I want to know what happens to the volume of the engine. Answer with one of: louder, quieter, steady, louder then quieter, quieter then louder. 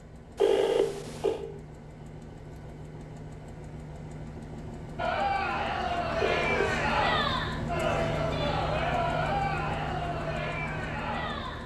louder.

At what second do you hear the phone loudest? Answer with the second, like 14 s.
1 s.